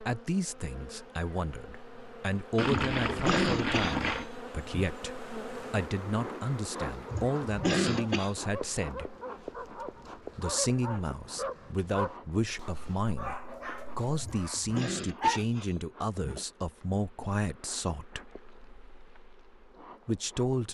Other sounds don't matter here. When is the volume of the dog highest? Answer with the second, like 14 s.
15 s.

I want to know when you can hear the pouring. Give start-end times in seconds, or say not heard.
2.5-4.3.